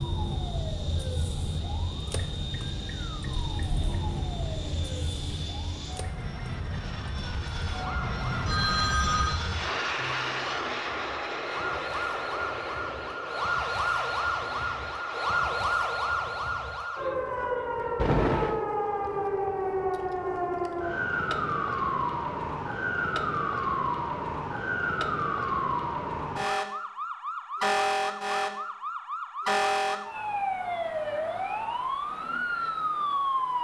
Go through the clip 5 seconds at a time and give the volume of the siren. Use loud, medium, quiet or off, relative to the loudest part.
medium, medium, loud, loud, loud, loud, loud.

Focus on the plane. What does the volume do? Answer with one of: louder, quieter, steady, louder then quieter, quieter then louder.
louder then quieter.